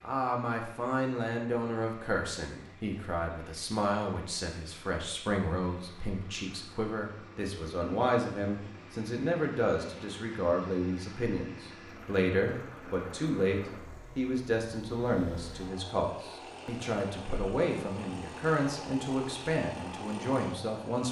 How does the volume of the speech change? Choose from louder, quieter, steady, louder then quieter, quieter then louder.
steady.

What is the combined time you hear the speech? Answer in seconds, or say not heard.
21 s.